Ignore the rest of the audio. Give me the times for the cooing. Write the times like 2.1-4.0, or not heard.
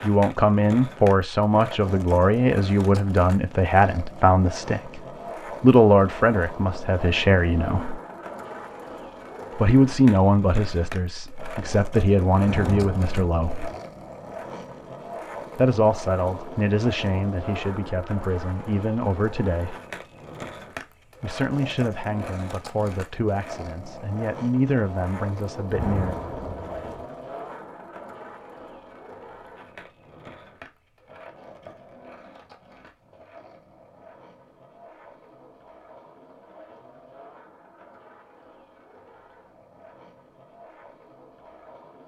not heard.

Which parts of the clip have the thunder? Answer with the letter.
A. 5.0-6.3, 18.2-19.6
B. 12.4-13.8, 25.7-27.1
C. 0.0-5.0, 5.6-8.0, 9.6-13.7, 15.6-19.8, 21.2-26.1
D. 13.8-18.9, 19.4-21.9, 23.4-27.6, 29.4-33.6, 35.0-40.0
B.